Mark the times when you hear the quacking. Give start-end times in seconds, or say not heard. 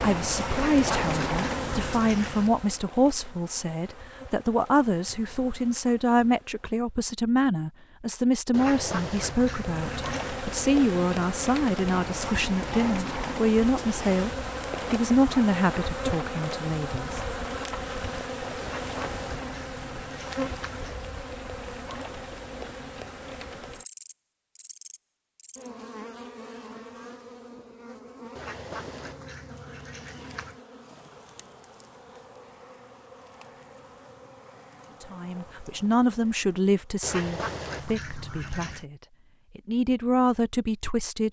0.5-2.5, 8.5-10.4, 18.6-20.9, 28.4-30.6, 37.0-38.9.